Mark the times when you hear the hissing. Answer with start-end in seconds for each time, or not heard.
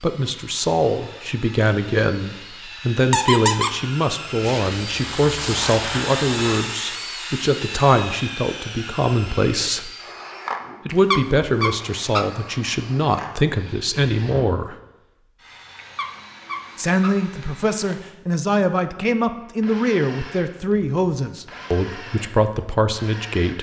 4.3-6.6.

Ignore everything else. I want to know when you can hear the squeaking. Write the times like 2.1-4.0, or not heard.
3.1-3.8, 10.9-12.3, 15.8-17.2.